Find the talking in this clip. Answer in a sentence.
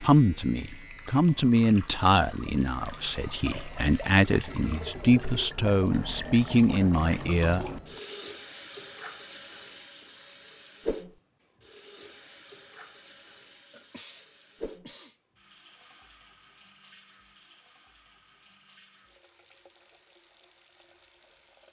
You can hear the talking from 0.0 to 7.7 s.